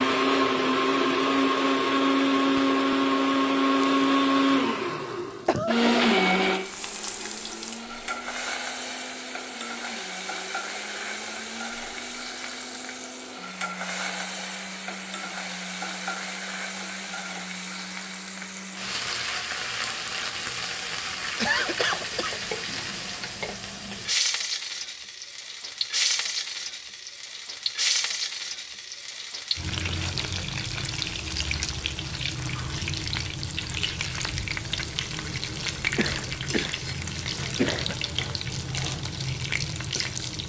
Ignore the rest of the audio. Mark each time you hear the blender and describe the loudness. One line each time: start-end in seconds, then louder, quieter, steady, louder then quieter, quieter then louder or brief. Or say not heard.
0.0-19.1 quieter.